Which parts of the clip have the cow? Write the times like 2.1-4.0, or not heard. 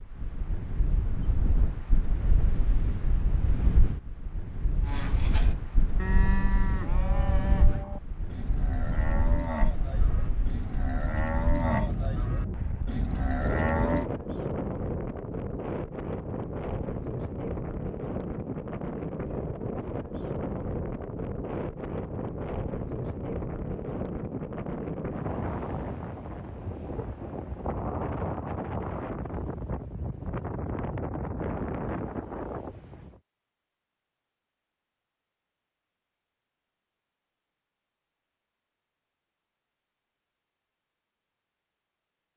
4.8-14.1.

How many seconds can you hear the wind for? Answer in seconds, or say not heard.
33 s.